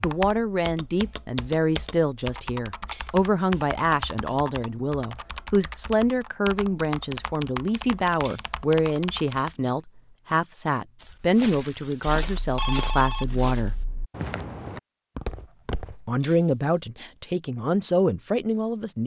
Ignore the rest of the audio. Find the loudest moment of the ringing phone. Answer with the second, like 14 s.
13 s.